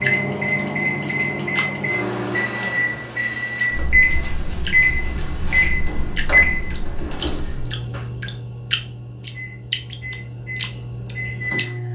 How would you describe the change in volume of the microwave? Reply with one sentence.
The loudness of the microwave goes down.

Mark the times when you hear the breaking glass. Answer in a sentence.
You can't hear the breaking glass here.